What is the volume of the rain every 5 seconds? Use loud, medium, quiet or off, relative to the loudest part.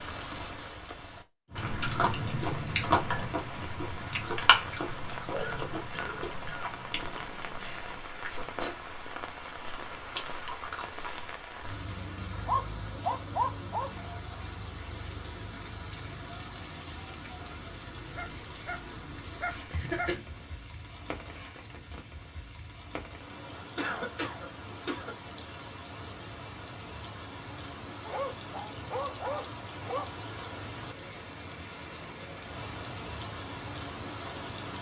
loud, loud, loud, loud, medium, loud, loud.